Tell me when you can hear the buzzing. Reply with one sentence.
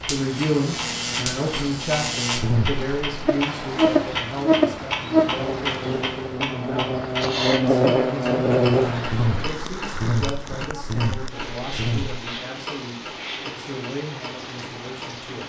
You can hear the buzzing from 0.0 to 12.2 s.